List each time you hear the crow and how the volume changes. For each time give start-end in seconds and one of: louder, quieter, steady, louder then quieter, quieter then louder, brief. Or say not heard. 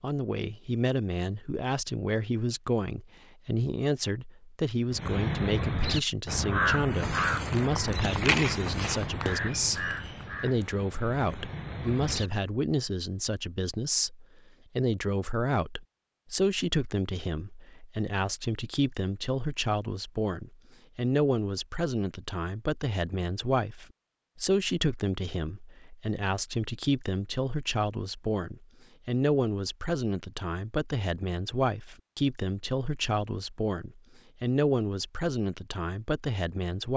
4.9-12.3 quieter.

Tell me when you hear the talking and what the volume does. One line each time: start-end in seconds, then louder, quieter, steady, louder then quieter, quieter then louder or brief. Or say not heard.
0.0-36.9 steady.